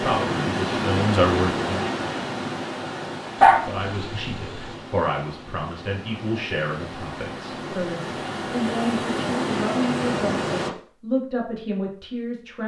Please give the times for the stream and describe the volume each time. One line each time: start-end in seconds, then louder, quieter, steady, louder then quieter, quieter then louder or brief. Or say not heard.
0.0-10.7 quieter then louder.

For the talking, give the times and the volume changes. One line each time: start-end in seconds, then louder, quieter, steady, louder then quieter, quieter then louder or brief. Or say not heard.
0.0-1.8 brief
3.5-12.6 steady.